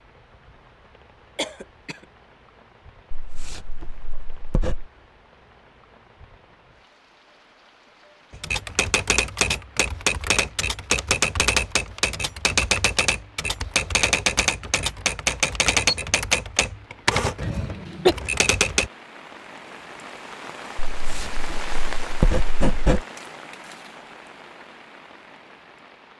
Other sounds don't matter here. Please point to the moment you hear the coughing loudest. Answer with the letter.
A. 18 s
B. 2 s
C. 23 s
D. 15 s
A.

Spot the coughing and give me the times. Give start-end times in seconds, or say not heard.
1.4-2.0, 17.4-18.1.